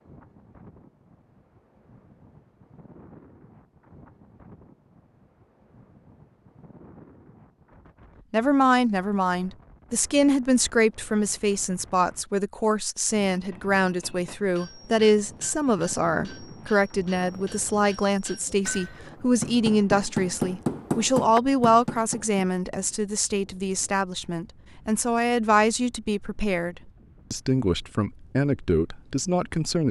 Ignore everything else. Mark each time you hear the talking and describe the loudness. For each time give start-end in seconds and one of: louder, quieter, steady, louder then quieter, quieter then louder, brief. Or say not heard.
8.3-29.8 steady.